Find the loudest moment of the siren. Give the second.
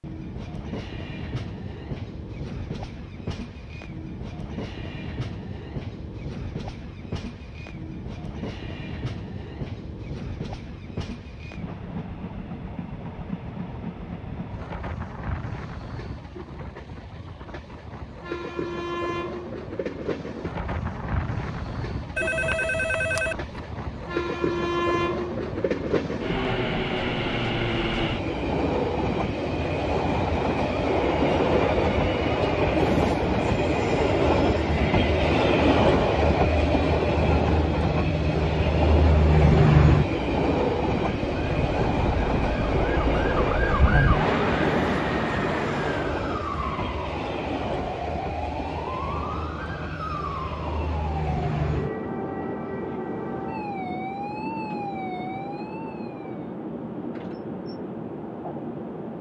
44 s.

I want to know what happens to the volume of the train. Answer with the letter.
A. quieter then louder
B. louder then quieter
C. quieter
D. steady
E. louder
B.